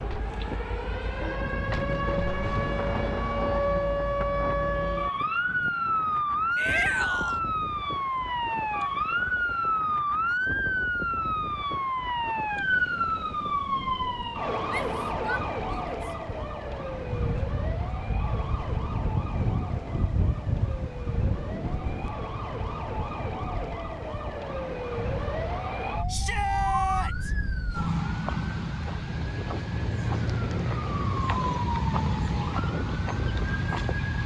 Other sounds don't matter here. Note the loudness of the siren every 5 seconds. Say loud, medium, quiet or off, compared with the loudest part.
loud, loud, loud, medium, medium, medium, loud.